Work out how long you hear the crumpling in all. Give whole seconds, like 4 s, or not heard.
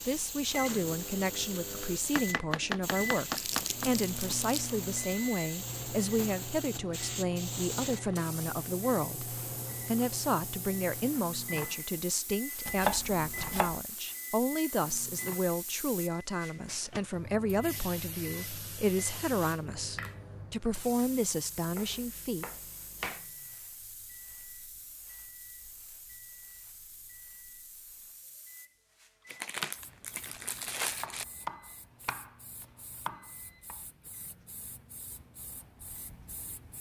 3 s.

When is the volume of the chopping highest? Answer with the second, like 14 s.
13 s.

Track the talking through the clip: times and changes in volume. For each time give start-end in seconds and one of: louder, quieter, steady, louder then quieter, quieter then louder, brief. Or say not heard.
0.1-22.4 steady.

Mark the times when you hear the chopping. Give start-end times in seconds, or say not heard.
2.1-3.9, 12.7-13.8, 21.7-23.2, 31.0-33.8.